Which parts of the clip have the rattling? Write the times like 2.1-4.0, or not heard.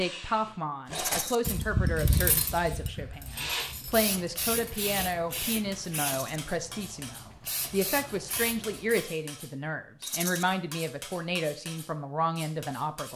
0.9-1.4, 6.0-6.4, 10.0-10.4.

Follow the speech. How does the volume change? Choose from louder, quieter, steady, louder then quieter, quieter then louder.
steady.